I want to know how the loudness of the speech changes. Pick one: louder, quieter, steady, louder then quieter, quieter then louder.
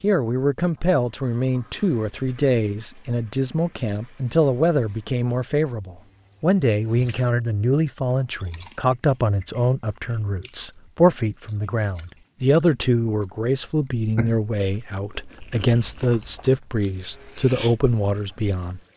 steady.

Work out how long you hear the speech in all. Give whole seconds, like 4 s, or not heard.
19 s.